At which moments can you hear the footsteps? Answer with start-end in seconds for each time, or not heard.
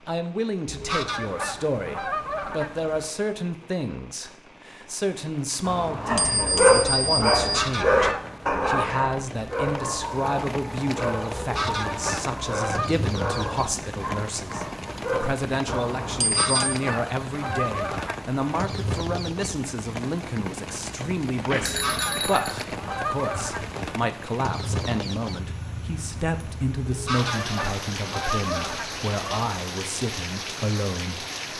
not heard.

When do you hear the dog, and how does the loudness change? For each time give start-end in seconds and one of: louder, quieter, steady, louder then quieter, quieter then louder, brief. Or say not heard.
6.0-15.8 quieter.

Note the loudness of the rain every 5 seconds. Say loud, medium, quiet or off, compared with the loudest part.
quiet, medium, loud, loud, loud, loud, loud.